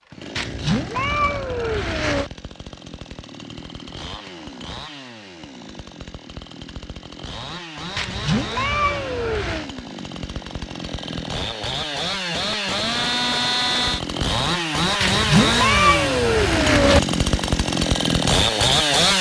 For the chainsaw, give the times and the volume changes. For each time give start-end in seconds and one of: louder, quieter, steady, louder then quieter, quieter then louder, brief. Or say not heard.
0.0-19.1 louder.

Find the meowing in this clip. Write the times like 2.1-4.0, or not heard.
0.3-2.3, 8.0-9.7, 15.0-17.0.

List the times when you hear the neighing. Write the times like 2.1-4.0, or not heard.
not heard.